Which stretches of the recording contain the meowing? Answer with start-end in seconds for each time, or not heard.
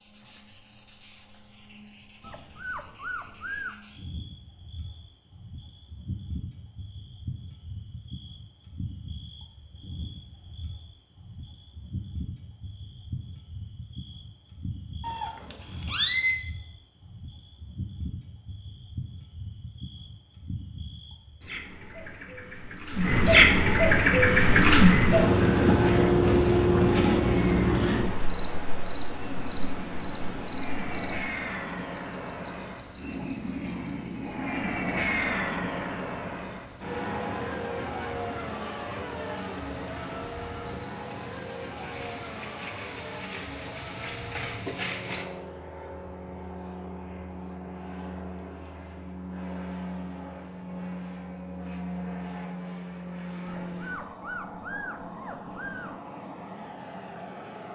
15.0-16.4.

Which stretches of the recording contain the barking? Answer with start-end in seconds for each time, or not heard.
2.2-3.8, 53.5-56.0.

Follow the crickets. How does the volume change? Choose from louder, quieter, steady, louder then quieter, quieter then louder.
louder then quieter.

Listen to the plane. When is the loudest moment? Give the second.
35 s.